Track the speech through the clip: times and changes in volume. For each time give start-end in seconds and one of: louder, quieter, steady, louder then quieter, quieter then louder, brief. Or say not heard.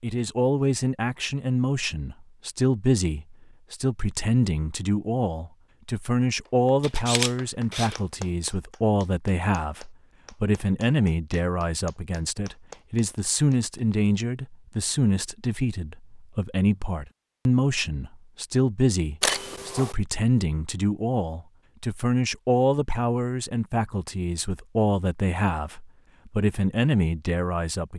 0.0-27.9 steady.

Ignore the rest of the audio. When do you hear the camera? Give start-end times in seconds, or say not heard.
6.8-8.0, 19.2-19.9.